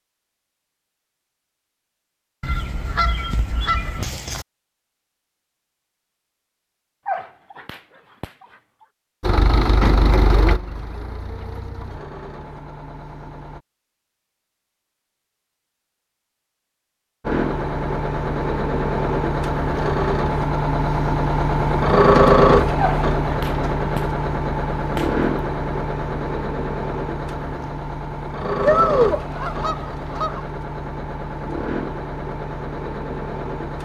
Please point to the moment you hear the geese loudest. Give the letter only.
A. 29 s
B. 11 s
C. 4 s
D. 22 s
A.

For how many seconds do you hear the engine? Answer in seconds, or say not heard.
21 s.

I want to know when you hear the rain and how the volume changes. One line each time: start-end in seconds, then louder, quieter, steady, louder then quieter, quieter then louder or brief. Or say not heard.
not heard.